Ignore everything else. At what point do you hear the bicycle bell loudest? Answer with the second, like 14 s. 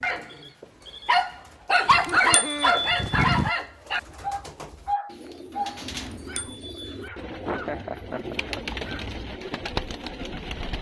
3 s.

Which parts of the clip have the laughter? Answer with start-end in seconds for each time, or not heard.
1.9-2.8, 7.5-8.6.